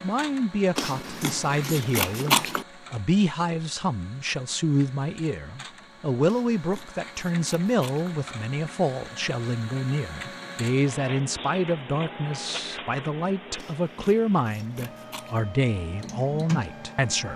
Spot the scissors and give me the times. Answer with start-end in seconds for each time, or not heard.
0.8-2.6, 6.2-8.2, 13.6-15.4.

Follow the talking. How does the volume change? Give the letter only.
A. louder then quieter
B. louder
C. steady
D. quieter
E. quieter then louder
C.